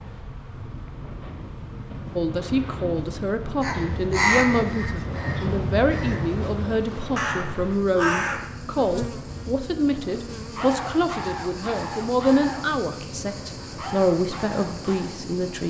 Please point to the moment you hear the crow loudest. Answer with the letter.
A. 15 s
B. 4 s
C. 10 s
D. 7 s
B.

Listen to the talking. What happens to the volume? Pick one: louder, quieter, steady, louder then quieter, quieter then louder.
steady.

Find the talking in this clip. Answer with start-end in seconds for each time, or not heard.
2.1-15.6.